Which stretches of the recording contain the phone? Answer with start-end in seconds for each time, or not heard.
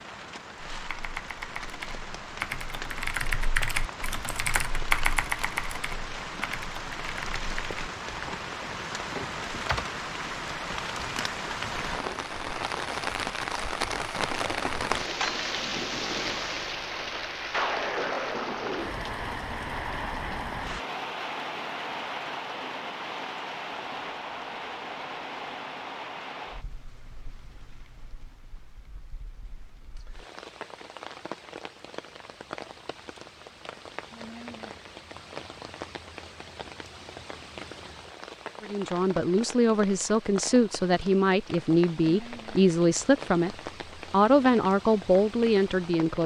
not heard.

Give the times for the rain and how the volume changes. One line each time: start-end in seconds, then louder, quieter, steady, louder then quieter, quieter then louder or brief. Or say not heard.
0.0-46.2 louder then quieter.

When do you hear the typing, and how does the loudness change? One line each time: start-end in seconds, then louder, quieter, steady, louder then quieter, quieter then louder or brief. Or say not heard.
0.7-9.8 louder then quieter.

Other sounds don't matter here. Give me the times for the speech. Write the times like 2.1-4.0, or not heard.
38.6-46.2.